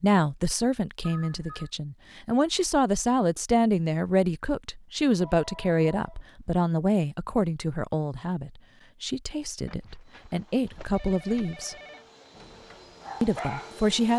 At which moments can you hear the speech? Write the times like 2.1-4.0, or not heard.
0.0-11.8, 13.2-14.1.